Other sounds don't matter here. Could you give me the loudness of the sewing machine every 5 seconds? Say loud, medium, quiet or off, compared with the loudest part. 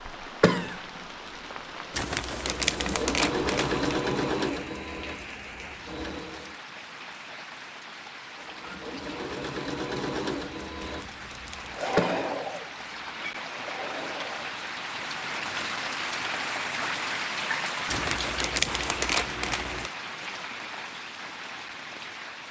loud, medium, medium, off, off.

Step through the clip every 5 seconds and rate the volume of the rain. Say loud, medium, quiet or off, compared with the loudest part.
medium, medium, medium, loud, medium.